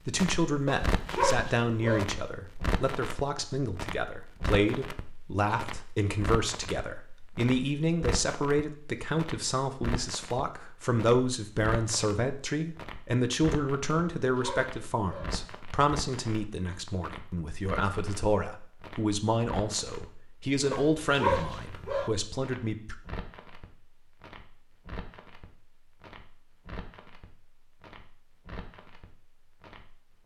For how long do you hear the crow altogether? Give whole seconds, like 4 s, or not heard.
not heard.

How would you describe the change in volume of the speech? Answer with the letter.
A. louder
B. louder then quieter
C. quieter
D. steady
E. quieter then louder
D.